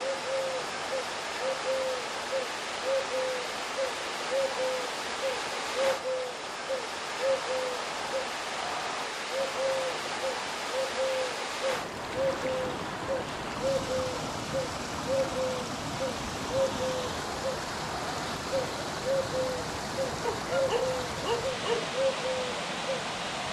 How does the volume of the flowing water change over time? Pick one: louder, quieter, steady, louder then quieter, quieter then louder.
steady.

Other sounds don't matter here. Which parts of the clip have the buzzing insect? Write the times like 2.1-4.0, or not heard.
not heard.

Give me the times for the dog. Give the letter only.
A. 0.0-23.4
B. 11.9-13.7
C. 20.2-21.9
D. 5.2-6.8
C.